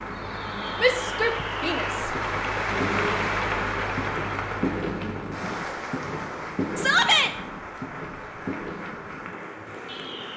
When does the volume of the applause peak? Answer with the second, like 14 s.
3 s.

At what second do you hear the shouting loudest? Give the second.
7 s.